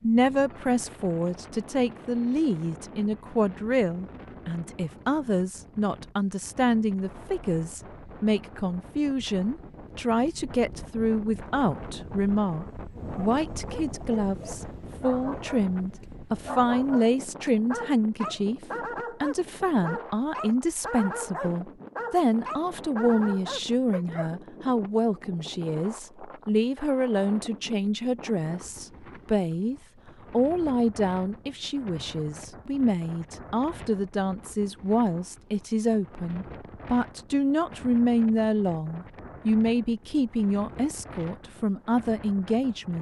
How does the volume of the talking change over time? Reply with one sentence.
The loudness of the talking stays about the same.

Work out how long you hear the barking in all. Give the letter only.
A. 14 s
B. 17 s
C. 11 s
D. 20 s
C.